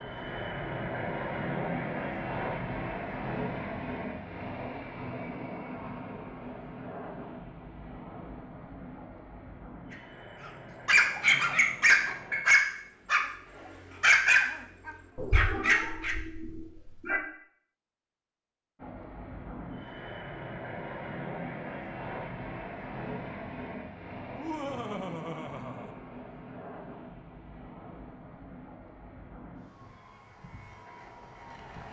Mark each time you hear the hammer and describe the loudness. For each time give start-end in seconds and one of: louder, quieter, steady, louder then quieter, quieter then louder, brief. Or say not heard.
not heard.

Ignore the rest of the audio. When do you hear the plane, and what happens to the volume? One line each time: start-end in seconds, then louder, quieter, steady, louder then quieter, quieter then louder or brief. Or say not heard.
0.0-12.4 quieter
18.8-31.8 quieter.